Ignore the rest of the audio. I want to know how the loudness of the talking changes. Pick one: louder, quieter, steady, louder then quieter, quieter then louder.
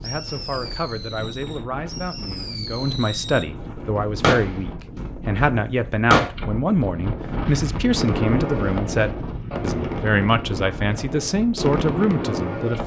louder.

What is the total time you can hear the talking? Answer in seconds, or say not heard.
13 s.